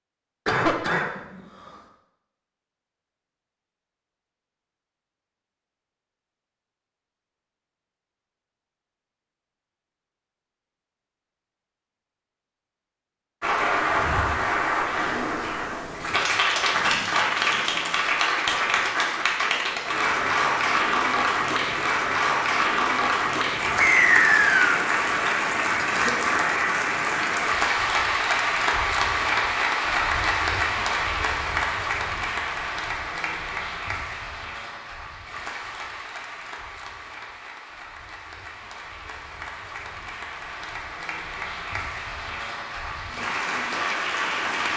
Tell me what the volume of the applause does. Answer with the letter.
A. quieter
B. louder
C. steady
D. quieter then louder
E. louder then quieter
A.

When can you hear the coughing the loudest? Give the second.
1 s.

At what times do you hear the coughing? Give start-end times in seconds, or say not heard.
0.5-1.8, 25.5-26.1.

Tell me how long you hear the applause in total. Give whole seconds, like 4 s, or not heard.
31 s.